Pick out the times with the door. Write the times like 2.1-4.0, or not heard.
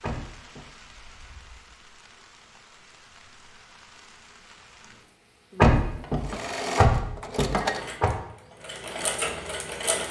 0.0-0.7, 5.5-8.1.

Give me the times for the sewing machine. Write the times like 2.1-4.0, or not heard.
6.2-10.0.